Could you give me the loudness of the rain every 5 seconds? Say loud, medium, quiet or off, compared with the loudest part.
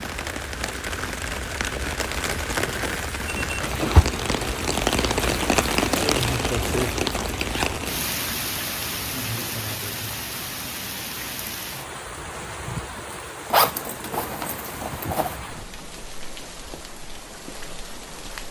loud, loud, medium, quiet.